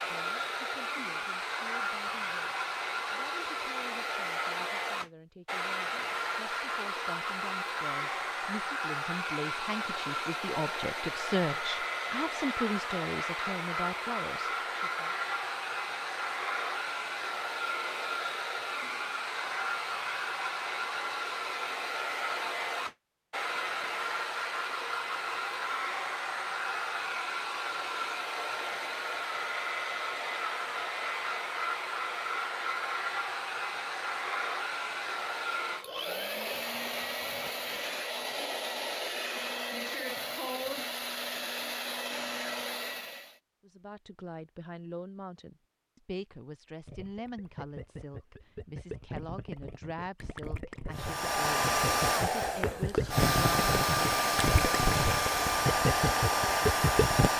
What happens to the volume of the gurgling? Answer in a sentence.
The volume of the gurgling goes up.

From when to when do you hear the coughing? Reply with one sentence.
The coughing can't be heard in this clip.